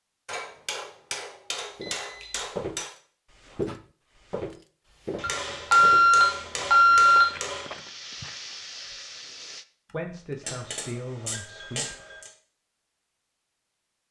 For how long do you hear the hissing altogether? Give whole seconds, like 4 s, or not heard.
2 s.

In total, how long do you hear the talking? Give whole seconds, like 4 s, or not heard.
2 s.